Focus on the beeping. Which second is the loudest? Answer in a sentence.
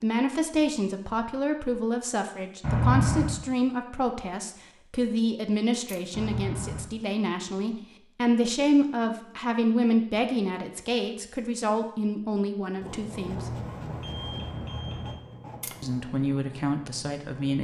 The loudest moment of the beeping is at 3 seconds.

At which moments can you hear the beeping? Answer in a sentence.
You can hear the beeping from 2.6 to 3.4 s, from 6.1 to 6.8 s and from 13.2 to 15.2 s.